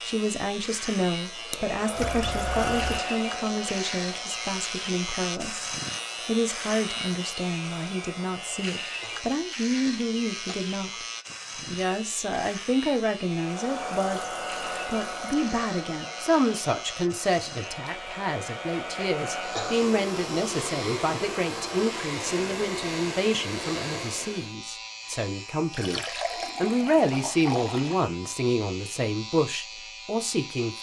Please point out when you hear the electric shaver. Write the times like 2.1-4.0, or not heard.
0.0-30.7.